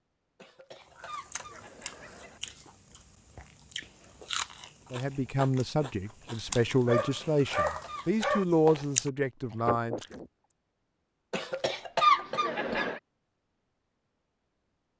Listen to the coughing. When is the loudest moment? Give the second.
12 s.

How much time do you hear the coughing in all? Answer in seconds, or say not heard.
5 s.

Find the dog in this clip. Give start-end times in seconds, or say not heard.
6.5-8.4.